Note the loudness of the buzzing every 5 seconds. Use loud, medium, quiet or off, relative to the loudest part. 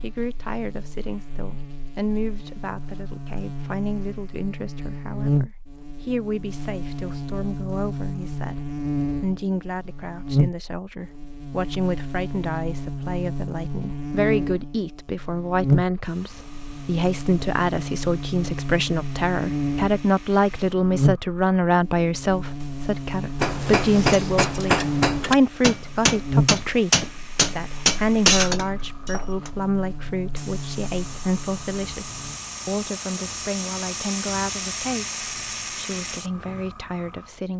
medium, loud, loud, loud, loud, loud, medium, off.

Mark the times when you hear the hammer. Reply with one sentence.
The hammer can be heard from 23.4 to 29.5 s.